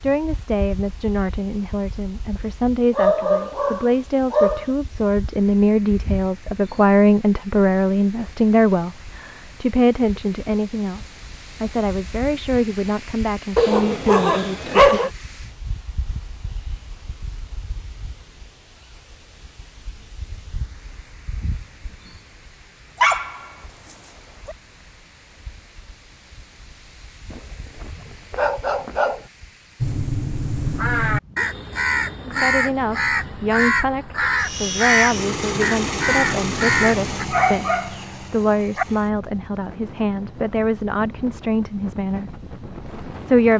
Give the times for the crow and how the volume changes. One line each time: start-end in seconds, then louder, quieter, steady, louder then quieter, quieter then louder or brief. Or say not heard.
29.8-37.2 steady.